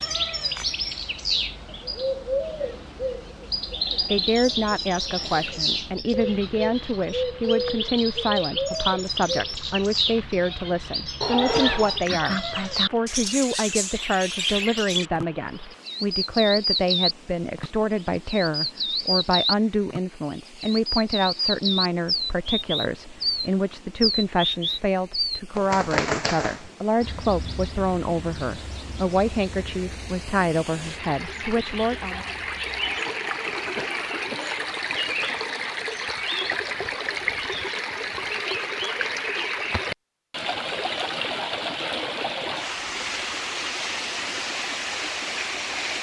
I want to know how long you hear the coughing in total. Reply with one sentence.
The coughing can be heard for 3 seconds in total.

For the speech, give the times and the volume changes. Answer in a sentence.
You can hear the speech from 4.0 to 32.2 s, at a steady volume.